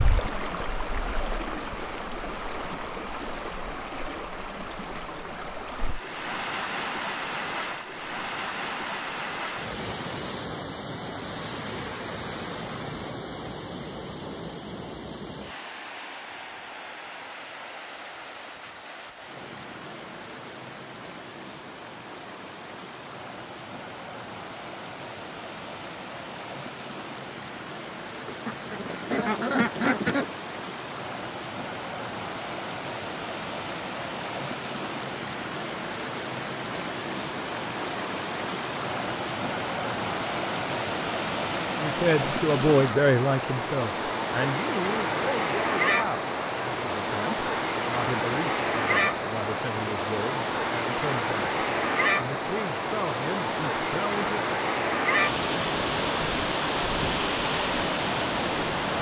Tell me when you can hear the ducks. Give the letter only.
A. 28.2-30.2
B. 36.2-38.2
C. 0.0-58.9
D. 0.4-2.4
A.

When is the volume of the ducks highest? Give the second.
30 s.